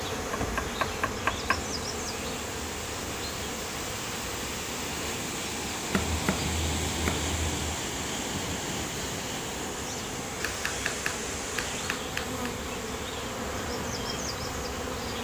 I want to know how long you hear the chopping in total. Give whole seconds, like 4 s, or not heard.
5 s.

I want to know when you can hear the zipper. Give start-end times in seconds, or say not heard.
not heard.